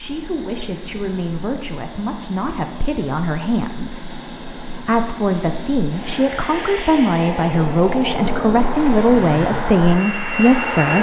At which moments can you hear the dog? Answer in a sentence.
The dog can't be heard in this clip.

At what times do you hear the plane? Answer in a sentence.
You can hear the plane from 0.0 to 10.9 s.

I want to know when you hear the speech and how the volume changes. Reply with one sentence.
You can hear the speech from 0.0 to 10.9 s, getting louder.